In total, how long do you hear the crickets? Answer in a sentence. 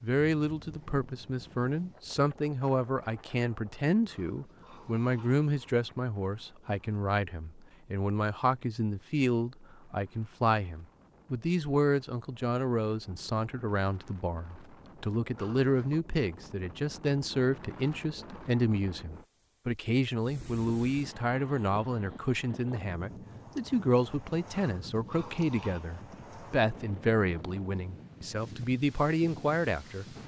The crickets can't be heard in this clip.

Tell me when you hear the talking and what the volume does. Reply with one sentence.
You can hear the talking from 0.0 to 30.1 s, at a steady volume.